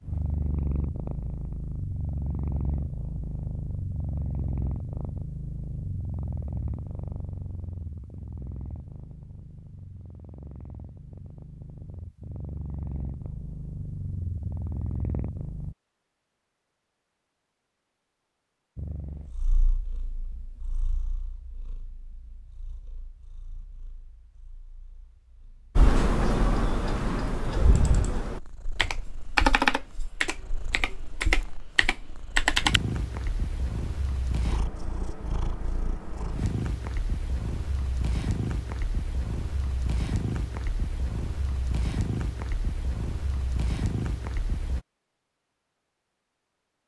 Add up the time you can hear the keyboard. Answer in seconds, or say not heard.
7 s.